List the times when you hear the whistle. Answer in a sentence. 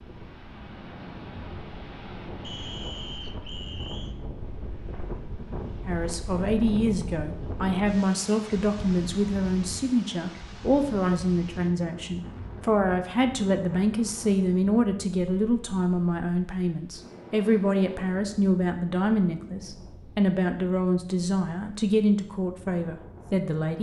You can hear the whistle from 2.4 to 4.2 s.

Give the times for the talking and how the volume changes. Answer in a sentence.
You can hear the talking from 5.8 to 23.7 s, at a steady volume.